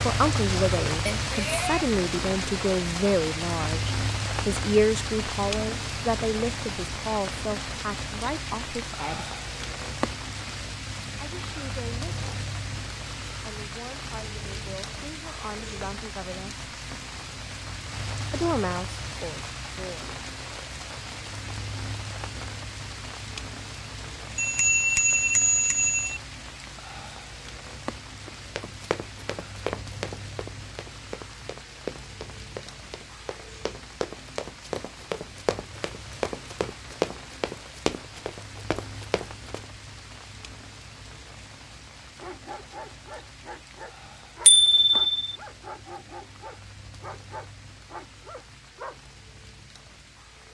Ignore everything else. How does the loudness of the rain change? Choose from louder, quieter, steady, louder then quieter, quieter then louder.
quieter.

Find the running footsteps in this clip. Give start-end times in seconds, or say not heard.
28.2-39.6.